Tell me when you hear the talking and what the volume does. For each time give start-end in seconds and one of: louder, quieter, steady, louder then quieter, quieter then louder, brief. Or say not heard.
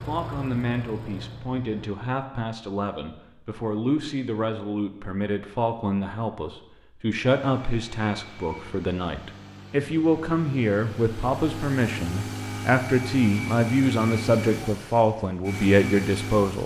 0.1-16.6 louder.